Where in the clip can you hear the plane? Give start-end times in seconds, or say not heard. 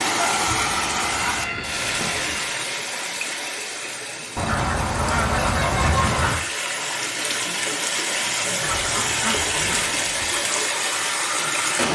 0.0-2.6.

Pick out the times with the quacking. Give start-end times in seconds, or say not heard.
0.5-2.5, 4.3-6.4, 8.6-10.3.